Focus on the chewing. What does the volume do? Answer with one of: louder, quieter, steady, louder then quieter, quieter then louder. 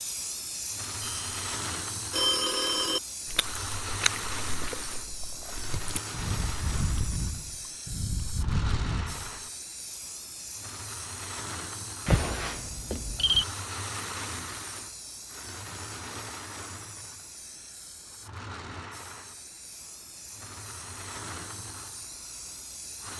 quieter then louder.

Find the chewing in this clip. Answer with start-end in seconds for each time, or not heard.
3.2-9.4.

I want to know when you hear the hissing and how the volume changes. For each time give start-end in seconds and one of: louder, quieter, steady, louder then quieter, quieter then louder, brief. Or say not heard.
0.0-23.1 quieter.